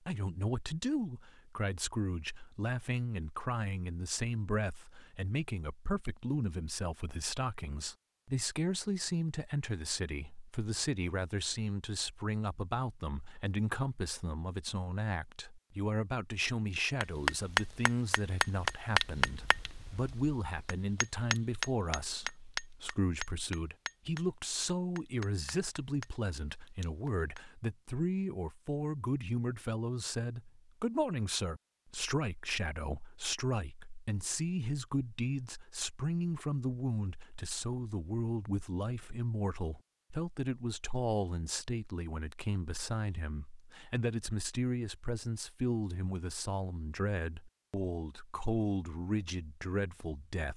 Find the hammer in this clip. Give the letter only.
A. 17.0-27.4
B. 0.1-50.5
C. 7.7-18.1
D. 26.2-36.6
A.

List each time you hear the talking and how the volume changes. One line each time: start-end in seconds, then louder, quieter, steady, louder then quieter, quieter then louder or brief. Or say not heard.
0.1-50.5 steady.